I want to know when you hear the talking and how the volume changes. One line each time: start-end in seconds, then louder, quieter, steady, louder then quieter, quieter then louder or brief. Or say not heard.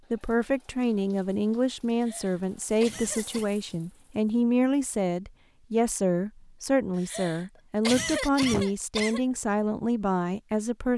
0.1-10.9 steady.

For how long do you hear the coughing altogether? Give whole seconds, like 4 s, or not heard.
4 s.